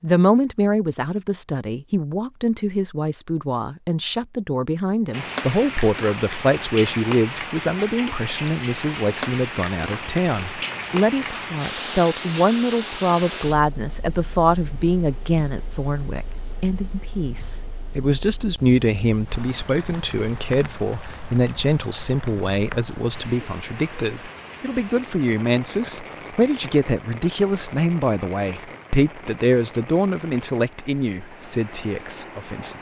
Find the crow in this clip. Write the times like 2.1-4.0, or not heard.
not heard.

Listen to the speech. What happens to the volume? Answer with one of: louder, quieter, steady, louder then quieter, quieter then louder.
steady.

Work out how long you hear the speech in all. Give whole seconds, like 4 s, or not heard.
33 s.